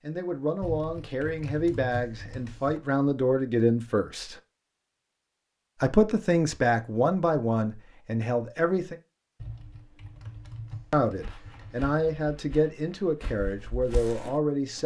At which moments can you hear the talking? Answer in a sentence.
The talking can be heard from 0.1 to 4.3 s, from 5.8 to 8.9 s and from 10.9 to 14.8 s.